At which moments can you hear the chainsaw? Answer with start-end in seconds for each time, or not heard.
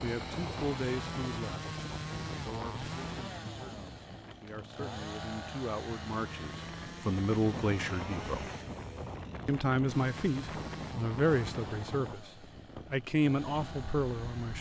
0.0-14.5.